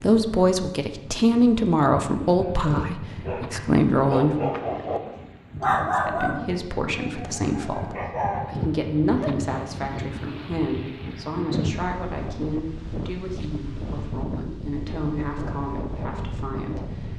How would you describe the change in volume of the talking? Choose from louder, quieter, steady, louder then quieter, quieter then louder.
quieter.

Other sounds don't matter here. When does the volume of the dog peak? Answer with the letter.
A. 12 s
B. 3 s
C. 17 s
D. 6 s
D.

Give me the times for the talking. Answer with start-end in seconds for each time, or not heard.
0.0-4.6, 5.9-17.1.